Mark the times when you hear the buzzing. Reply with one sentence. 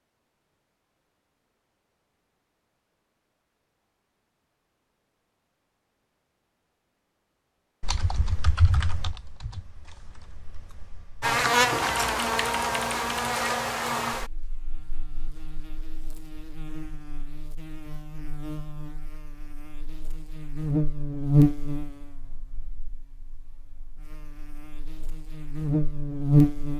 The buzzing can be heard from 11.2 to 26.7 s.